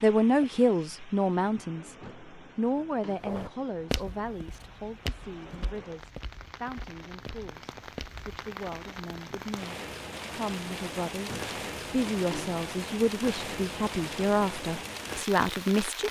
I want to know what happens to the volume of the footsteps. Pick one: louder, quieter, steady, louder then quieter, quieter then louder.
quieter.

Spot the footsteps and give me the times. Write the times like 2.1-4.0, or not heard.
3.2-8.2.